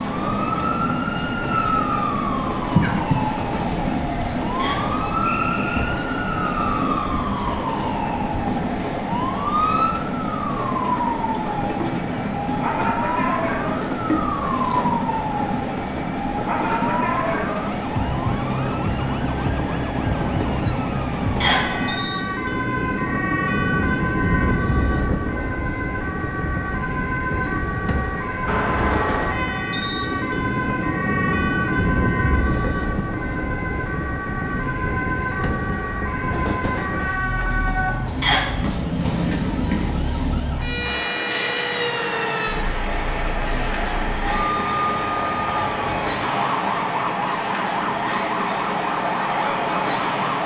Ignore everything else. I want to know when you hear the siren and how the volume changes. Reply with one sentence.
The siren can be heard from 0.0 to 50.4 s, at a steady volume.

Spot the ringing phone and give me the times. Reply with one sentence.
You can hear the ringing phone from 28.4 to 29.4 s.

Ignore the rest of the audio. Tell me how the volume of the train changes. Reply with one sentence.
The volume of the train stays about the same.